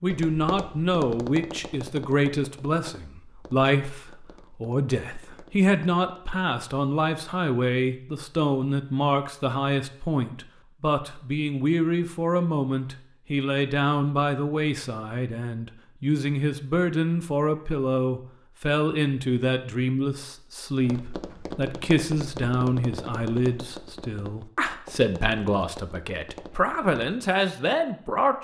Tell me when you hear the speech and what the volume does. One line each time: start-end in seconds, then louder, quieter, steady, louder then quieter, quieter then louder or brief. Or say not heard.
0.0-28.3 steady.